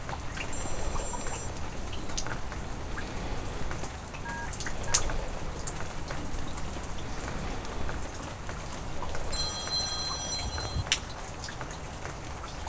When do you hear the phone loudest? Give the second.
10 s.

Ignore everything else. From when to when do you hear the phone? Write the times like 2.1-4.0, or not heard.
0.5-1.5, 4.2-5.0, 9.3-10.8.